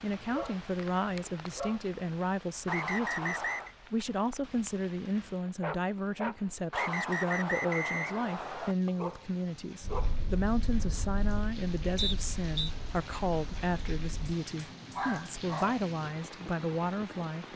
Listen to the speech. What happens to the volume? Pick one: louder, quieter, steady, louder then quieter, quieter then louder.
steady.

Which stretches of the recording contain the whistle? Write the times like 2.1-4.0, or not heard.
2.6-3.8, 6.7-8.8, 11.9-12.7.